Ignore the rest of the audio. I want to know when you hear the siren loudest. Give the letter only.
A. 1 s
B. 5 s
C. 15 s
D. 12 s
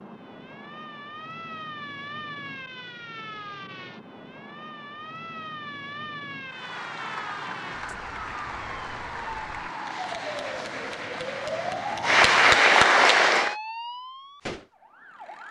D.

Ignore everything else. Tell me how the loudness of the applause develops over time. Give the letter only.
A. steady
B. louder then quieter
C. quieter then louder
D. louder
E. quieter
D.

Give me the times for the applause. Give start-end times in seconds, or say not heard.
6.5-13.6.